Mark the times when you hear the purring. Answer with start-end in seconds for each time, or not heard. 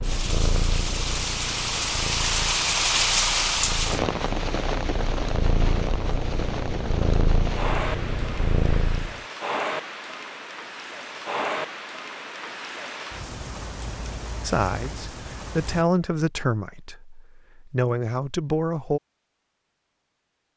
0.0-9.2.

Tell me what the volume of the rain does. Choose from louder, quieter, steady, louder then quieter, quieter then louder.
quieter.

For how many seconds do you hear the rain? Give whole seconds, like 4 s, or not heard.
16 s.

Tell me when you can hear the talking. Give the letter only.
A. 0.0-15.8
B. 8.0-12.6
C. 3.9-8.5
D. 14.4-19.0
D.